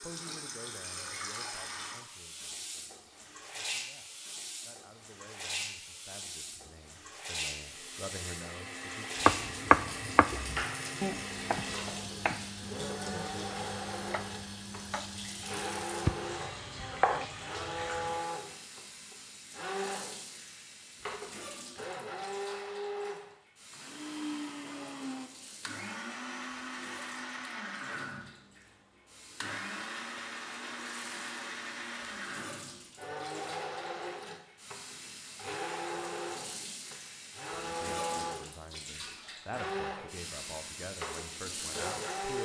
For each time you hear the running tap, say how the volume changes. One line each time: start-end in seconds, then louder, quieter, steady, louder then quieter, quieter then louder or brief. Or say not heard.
0.0-42.3 quieter then louder.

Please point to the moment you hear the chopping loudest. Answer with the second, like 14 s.
10 s.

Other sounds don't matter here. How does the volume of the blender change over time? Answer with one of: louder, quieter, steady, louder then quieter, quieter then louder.
steady.